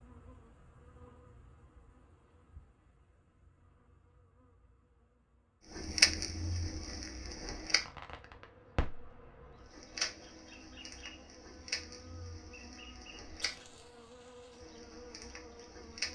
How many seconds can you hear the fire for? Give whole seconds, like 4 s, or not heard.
10 s.